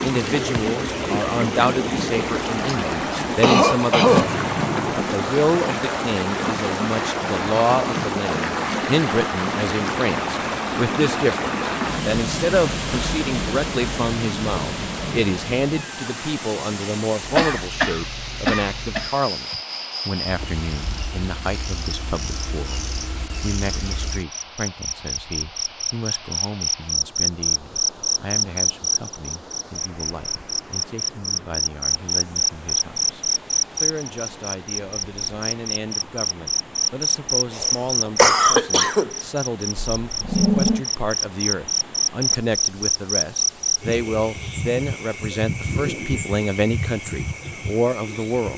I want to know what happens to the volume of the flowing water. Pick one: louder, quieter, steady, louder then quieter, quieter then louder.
quieter.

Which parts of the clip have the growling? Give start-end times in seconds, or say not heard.
4.0-5.1, 39.8-40.9.